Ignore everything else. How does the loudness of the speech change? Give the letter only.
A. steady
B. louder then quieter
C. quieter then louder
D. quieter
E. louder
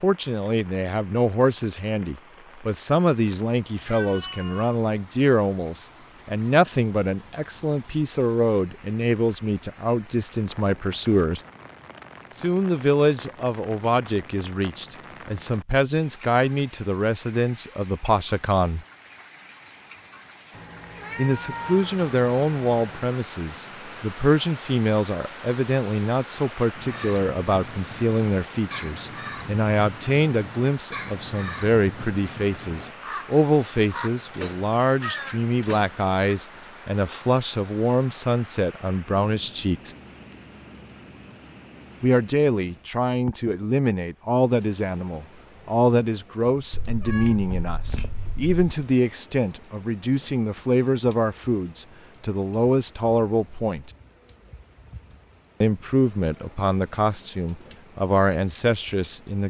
A.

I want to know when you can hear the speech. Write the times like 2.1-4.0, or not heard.
0.0-11.4, 12.3-18.9, 21.1-40.0, 42.0-53.9, 55.6-59.4.